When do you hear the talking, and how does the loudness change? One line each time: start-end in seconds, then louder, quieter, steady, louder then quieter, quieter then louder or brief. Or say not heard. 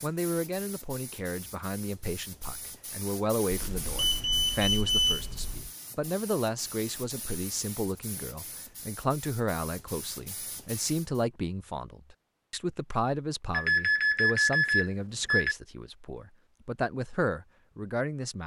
0.0-18.4 steady.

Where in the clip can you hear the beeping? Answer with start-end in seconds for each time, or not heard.
3.5-5.7, 13.5-15.6.